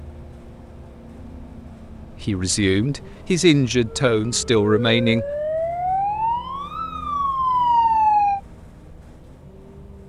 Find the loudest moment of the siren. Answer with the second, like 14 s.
8 s.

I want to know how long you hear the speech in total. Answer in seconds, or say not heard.
3 s.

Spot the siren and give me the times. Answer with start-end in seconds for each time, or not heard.
3.9-8.4.